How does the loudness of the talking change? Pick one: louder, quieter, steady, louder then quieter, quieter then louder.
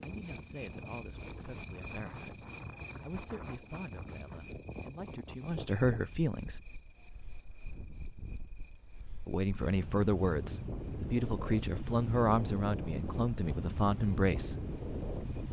louder.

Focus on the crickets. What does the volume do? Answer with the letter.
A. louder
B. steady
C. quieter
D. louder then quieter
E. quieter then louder
C.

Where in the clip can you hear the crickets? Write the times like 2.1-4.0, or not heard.
0.0-15.4.